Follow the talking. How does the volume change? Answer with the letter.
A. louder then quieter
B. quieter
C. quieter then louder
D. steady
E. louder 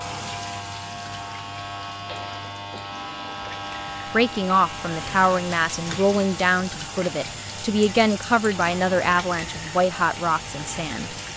D.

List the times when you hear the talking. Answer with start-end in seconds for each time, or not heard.
4.1-11.2.